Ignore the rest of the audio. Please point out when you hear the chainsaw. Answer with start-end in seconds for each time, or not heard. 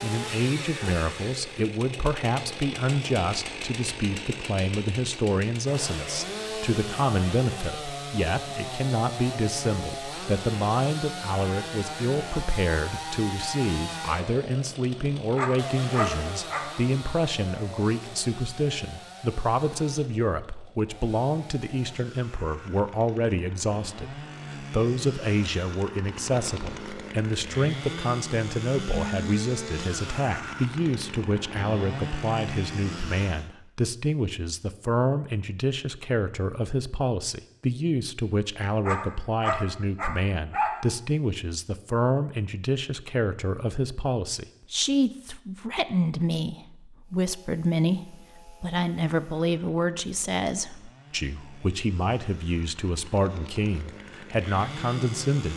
0.0-33.5, 47.0-55.5.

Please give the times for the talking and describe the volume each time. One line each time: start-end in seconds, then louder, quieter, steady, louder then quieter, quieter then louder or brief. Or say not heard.
0.0-55.5 steady.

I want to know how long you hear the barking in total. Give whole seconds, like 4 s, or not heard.
3 s.